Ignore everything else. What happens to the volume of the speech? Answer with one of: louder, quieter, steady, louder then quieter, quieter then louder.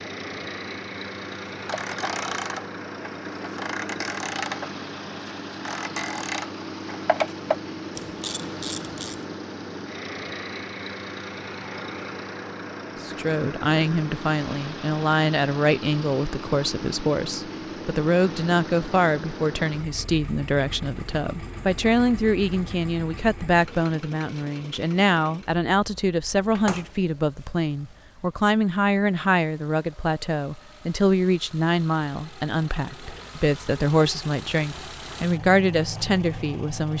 steady.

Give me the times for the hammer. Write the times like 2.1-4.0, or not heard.
not heard.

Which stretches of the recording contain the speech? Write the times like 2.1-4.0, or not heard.
13.0-36.9.